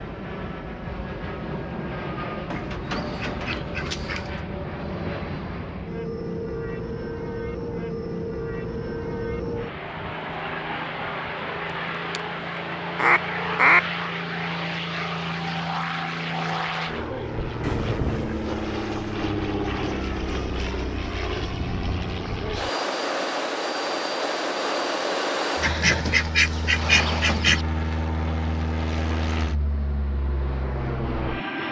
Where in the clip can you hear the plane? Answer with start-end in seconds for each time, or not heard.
0.0-31.6.